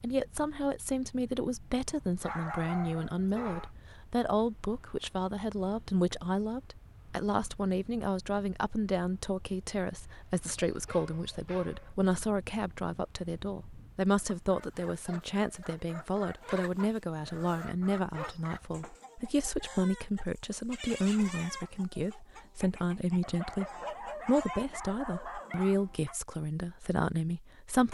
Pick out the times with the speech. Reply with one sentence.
You can hear the speech from 0.0 to 27.8 s.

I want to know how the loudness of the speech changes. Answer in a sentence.
The volume of the speech stays about the same.